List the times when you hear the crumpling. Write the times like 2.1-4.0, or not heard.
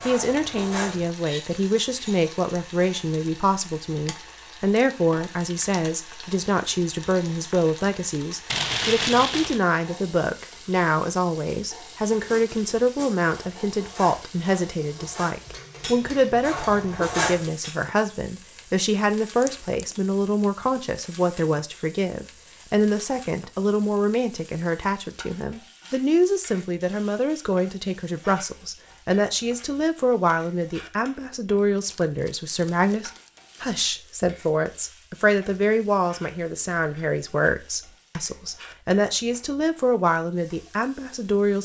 8.5-9.6, 19.4-20.0, 31.8-33.7.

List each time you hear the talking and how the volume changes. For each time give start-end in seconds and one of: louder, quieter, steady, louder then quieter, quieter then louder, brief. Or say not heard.
0.1-41.6 steady.